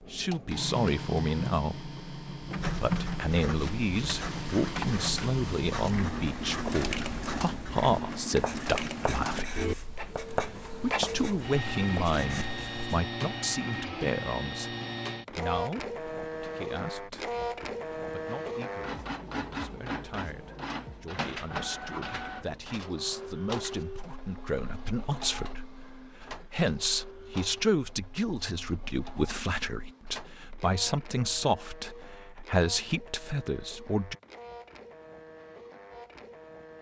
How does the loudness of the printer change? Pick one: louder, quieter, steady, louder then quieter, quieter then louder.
quieter.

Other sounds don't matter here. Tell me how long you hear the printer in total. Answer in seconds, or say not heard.
37 s.